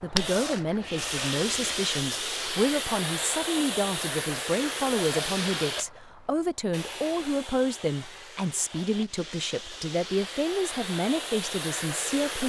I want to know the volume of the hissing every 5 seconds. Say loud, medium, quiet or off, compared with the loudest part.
loud, medium, loud.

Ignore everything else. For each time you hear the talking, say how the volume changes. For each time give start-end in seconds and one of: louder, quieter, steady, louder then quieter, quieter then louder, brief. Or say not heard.
0.0-12.4 steady.